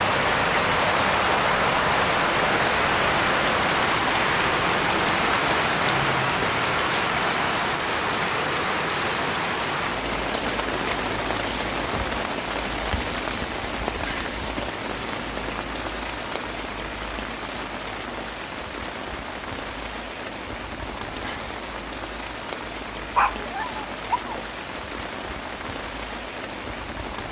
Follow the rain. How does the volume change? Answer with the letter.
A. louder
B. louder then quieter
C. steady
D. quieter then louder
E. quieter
E.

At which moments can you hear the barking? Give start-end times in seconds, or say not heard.
23.1-24.4.